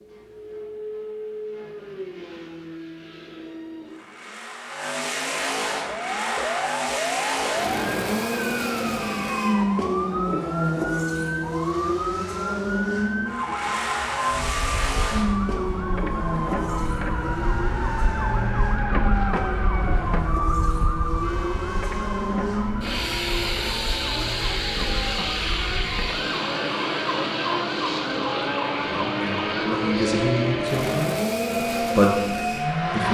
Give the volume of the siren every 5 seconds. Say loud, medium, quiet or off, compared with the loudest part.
off, loud, loud, loud, loud, loud, loud.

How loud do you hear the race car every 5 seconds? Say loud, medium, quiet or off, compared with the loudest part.
medium, loud, loud, loud, loud, loud, loud.